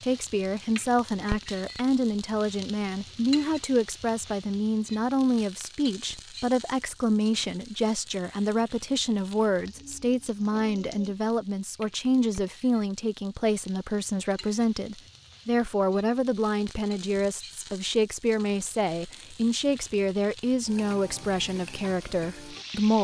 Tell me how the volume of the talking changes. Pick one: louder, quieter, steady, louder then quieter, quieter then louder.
steady.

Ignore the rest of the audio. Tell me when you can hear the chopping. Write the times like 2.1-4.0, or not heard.
not heard.